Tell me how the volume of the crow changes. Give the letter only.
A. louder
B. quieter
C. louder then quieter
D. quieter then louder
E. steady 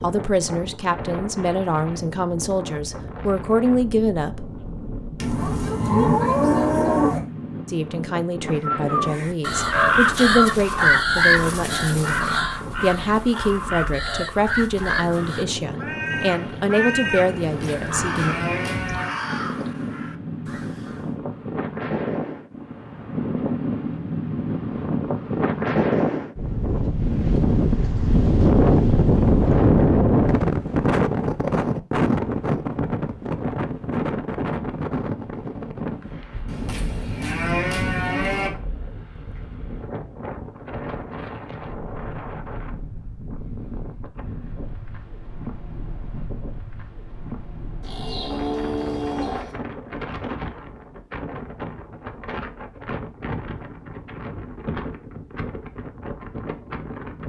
B.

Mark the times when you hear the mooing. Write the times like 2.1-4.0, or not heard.
5.2-7.2, 17.4-19.1, 36.5-38.5, 47.8-49.5.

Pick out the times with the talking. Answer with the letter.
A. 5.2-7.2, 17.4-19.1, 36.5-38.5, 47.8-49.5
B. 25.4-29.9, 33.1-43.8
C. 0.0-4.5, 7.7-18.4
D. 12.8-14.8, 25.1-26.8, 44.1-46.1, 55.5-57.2
C.